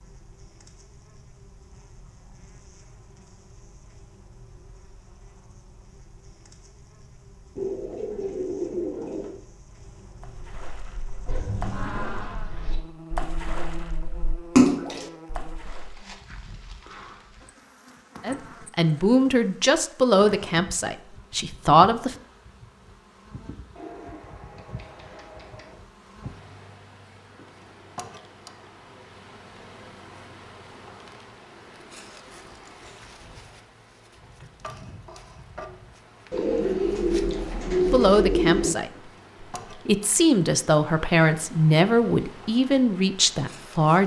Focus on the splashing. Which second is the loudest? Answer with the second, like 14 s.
15 s.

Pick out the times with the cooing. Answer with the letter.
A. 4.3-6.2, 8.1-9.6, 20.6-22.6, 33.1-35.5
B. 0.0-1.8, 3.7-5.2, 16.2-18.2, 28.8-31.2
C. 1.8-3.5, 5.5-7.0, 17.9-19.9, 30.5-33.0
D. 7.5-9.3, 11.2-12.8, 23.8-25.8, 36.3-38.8
D.